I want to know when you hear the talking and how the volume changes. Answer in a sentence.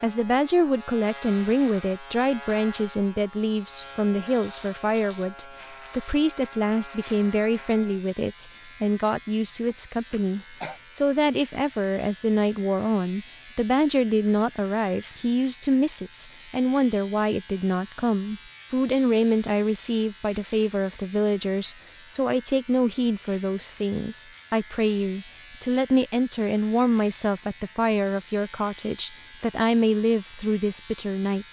You can hear the talking from 0.0 to 31.4 s, at a steady volume.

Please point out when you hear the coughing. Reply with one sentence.
The coughing can be heard from 9.7 to 10.8 s.